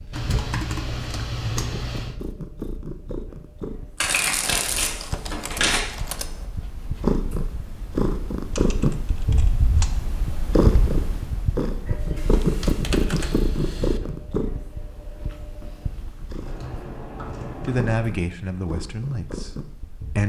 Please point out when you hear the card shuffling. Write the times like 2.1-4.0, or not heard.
4.0-5.8.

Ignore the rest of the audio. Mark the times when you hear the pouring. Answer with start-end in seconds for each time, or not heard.
not heard.